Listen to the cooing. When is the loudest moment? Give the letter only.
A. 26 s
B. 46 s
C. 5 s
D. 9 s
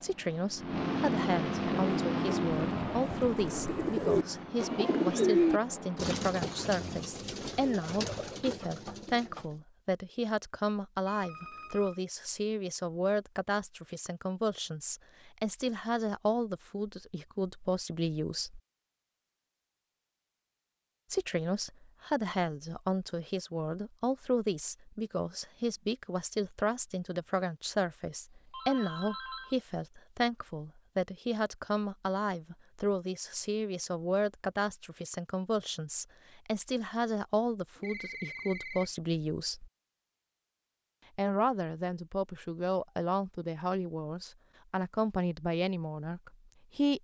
C.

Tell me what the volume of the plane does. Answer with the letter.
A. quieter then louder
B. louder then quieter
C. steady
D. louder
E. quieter
E.